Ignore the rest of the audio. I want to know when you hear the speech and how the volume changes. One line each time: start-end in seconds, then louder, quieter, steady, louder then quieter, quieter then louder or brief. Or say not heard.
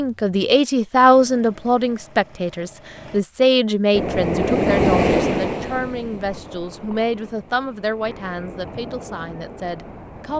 0.0-10.3 quieter.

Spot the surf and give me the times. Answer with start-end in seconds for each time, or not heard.
3.9-10.3.